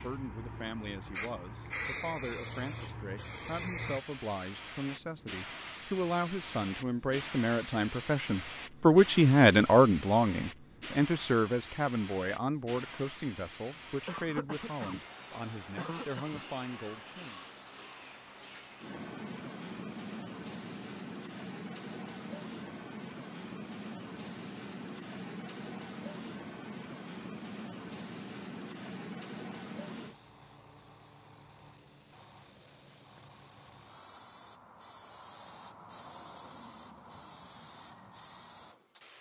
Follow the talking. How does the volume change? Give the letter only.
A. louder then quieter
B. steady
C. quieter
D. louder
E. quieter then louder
A.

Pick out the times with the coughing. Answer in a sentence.
The coughing can be heard from 14.1 to 16.4 s.